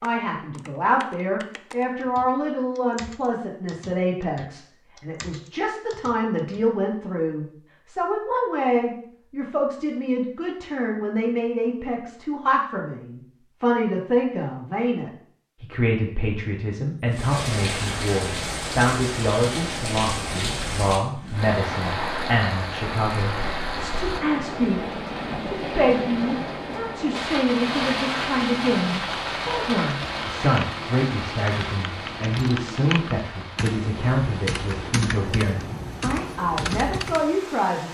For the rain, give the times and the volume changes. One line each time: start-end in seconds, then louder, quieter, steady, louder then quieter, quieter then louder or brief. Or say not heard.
17.1-37.8 quieter.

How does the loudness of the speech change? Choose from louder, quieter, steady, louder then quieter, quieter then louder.
steady.